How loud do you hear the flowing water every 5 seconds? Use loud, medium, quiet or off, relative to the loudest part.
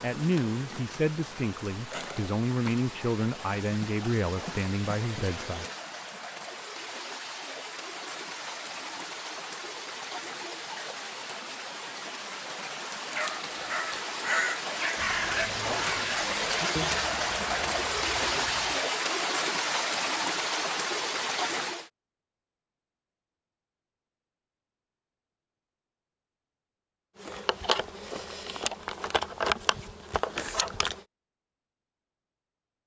quiet, medium, medium, loud, loud, off, off.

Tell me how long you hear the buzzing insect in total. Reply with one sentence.
The buzzing insect can be heard for 10 seconds in total.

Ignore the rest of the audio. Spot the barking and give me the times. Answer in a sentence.
The barking can be heard from 13.1 to 15.6 s.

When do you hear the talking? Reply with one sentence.
You can hear the talking from 0.0 to 5.7 s.